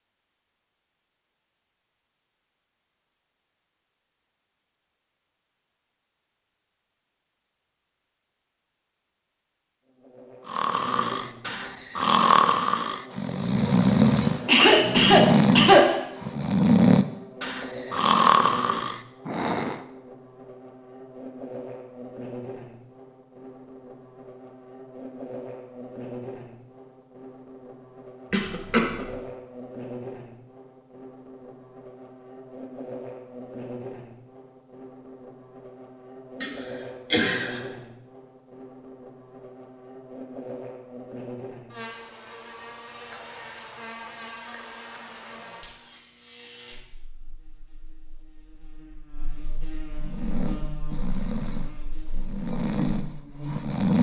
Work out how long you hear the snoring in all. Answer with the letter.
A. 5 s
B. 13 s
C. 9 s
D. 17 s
B.